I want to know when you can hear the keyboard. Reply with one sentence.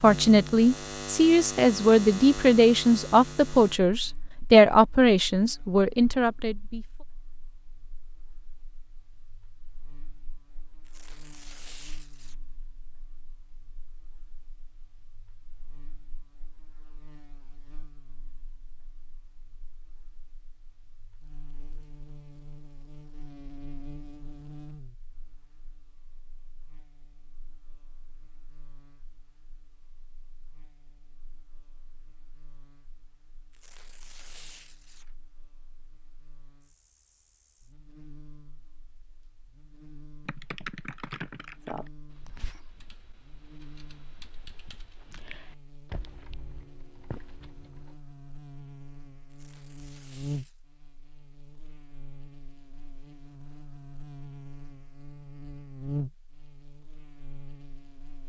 You can hear the keyboard from 40.2 to 48.0 s.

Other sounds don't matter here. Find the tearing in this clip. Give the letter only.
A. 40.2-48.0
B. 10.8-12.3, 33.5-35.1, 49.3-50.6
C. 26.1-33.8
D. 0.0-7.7
B.